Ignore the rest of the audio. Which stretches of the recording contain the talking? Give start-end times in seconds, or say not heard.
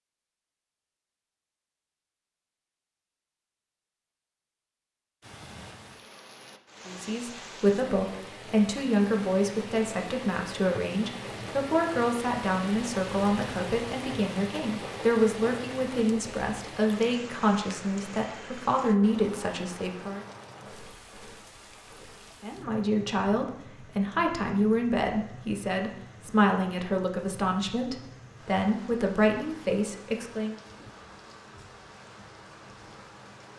6.8-20.2, 22.4-30.6.